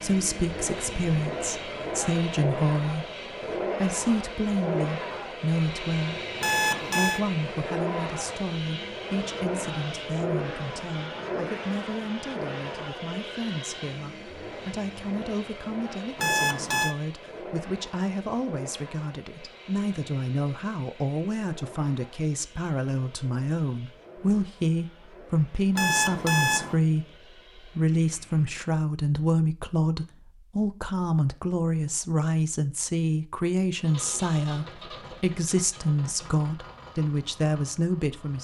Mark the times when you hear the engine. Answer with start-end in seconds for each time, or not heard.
0.0-28.6, 33.8-38.3.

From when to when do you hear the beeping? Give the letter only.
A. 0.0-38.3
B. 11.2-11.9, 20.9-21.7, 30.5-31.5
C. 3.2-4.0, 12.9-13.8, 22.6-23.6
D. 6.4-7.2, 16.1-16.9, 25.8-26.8
D.